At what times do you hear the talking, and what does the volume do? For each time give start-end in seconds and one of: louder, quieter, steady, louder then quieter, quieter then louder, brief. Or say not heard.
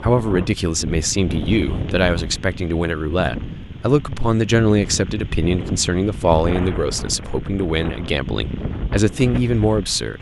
0.0-10.1 steady.